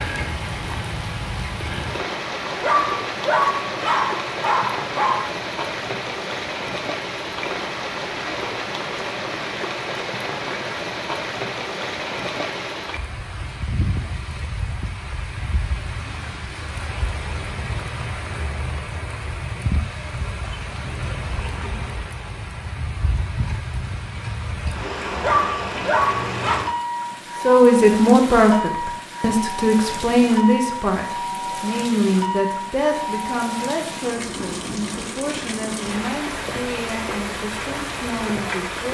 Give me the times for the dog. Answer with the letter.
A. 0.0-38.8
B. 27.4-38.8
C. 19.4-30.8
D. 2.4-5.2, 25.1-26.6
D.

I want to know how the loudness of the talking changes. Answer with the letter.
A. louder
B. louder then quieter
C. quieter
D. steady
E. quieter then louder
C.